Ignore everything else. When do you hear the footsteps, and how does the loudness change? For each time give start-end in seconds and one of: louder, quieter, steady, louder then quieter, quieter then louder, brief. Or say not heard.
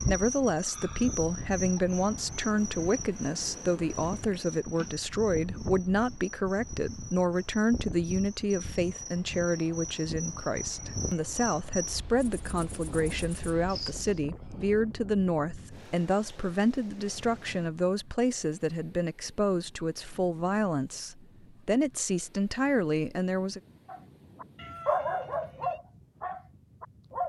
not heard.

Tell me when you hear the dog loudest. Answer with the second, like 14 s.
25 s.